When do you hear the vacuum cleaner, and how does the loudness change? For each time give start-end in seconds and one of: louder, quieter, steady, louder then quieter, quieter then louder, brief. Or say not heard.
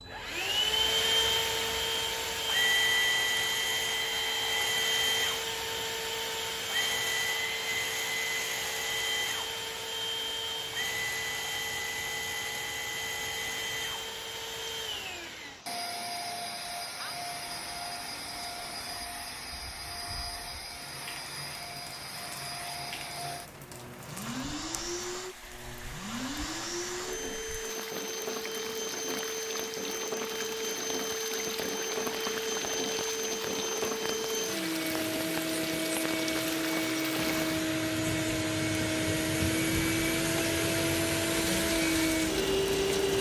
0.0-43.1 quieter then louder.